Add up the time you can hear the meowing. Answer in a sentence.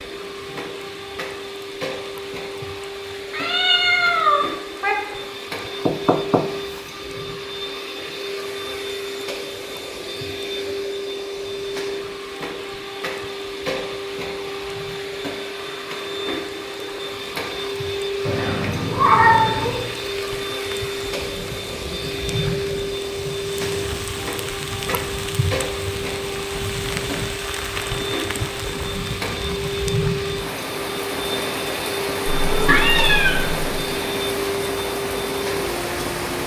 You can hear the meowing for 5 seconds altogether.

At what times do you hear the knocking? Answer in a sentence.
You can hear the knocking from 5.8 to 6.8 s.